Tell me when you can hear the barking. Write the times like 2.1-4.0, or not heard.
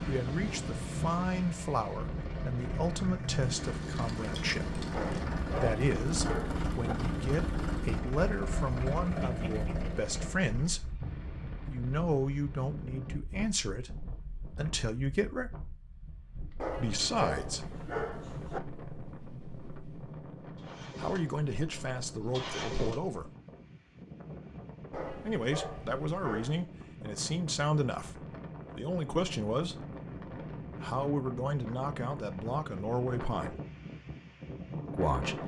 4.9-7.0, 16.6-18.6, 24.9-26.7.